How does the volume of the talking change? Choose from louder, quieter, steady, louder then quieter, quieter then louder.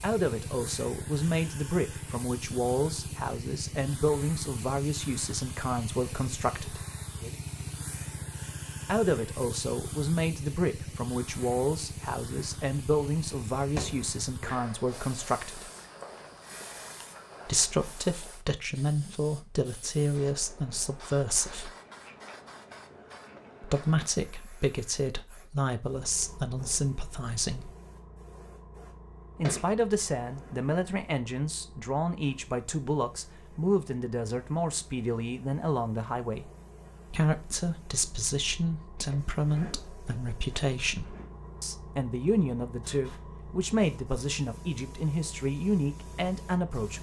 steady.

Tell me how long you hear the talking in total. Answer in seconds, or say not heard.
39 s.